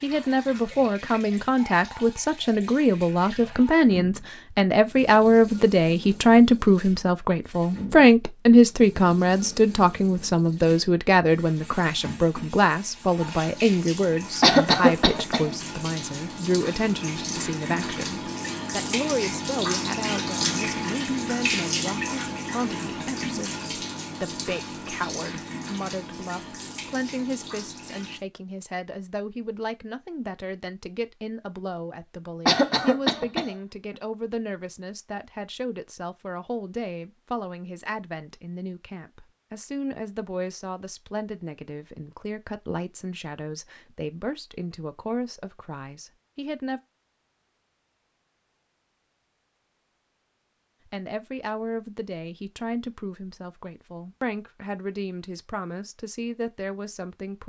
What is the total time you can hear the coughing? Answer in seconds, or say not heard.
2 s.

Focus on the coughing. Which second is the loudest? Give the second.
15 s.